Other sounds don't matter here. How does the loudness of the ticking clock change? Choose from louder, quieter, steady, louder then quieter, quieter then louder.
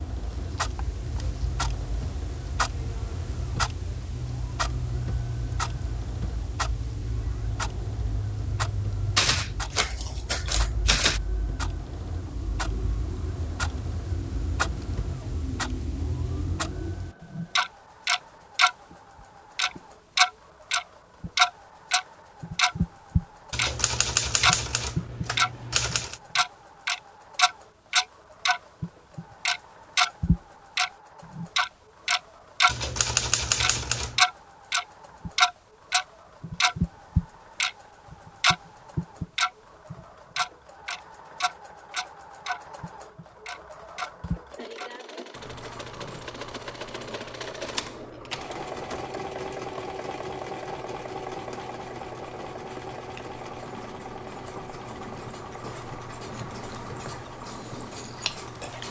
louder then quieter.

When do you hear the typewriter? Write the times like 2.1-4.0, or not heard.
9.2-11.2, 23.5-26.1, 32.6-34.2, 47.6-49.1.